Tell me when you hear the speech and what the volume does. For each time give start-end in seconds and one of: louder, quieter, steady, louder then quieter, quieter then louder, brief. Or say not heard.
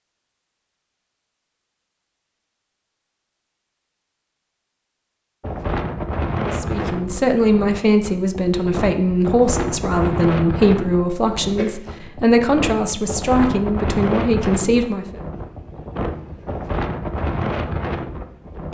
6.5-15.2 steady.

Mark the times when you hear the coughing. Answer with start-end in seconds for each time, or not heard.
11.1-11.8.